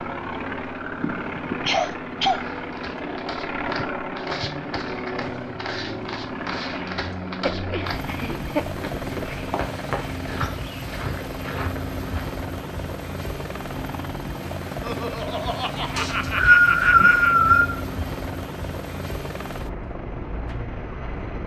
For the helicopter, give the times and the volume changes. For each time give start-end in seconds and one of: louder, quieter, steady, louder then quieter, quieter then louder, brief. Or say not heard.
0.0-21.4 steady.